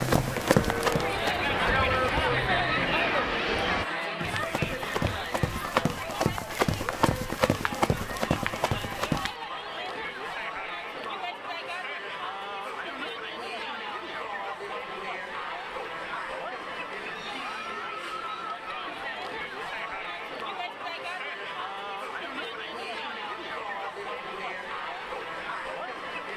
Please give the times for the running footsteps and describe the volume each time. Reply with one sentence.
You can hear the running footsteps briefly from 0.0 to 2.2 s; and from 4.2 to 9.3 s, at a steady volume.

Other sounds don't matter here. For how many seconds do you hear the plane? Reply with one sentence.
You can hear the plane for 4 seconds altogether.